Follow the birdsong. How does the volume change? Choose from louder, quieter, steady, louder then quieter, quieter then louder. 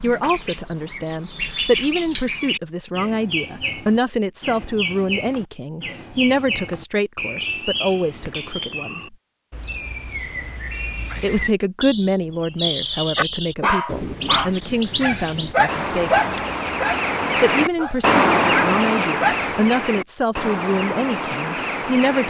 louder.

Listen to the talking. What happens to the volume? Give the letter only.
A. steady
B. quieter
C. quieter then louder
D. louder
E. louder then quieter
A.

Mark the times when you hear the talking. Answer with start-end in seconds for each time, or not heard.
0.0-9.2, 11.2-16.4, 17.2-22.2.